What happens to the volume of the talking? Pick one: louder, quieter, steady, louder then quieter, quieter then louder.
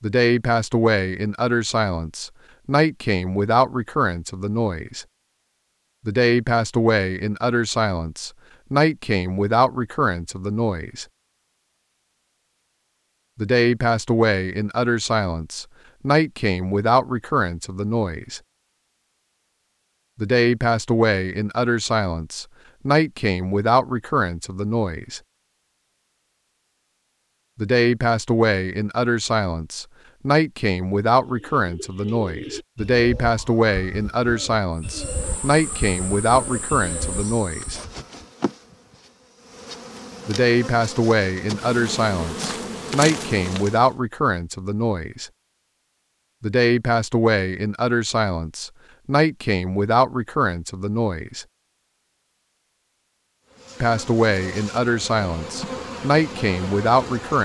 steady.